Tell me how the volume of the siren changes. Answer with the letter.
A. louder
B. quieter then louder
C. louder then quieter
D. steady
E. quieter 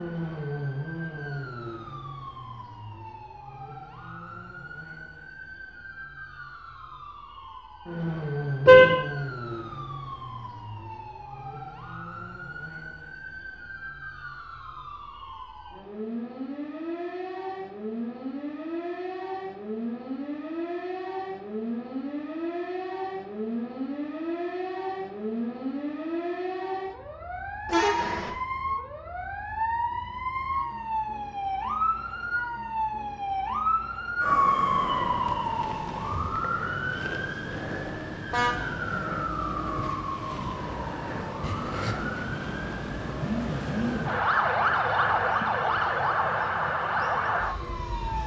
A.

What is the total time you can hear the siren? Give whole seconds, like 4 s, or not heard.
48 s.